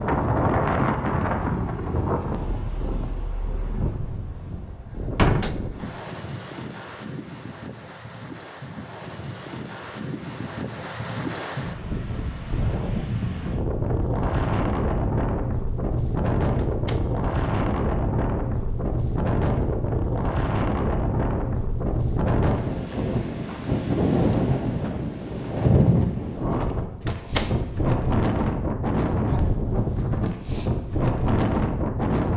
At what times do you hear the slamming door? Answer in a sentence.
The slamming door can be heard from 5.2 to 5.6 s, from 16.6 to 17.1 s and from 27.1 to 27.5 s.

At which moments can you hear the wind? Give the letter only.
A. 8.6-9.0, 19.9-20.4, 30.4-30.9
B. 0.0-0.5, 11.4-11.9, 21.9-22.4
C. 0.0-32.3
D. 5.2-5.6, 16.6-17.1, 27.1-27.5
C.